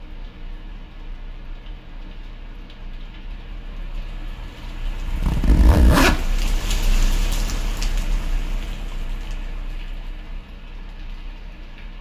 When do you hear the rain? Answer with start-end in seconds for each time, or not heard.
0.0-11.9.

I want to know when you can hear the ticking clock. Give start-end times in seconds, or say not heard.
not heard.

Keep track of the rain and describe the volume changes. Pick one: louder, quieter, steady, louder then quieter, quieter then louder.
louder then quieter.